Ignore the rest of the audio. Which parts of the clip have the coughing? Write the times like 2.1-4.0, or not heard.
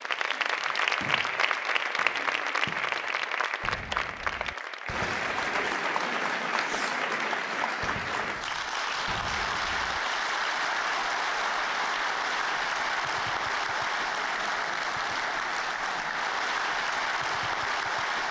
not heard.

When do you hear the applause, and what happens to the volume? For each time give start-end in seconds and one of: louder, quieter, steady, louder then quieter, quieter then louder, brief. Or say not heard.
0.0-18.2 steady.